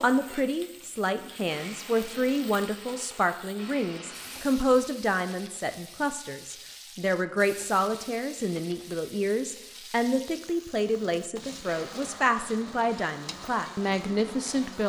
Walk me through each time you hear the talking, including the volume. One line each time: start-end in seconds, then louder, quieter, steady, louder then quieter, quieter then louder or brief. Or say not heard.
0.0-14.8 steady.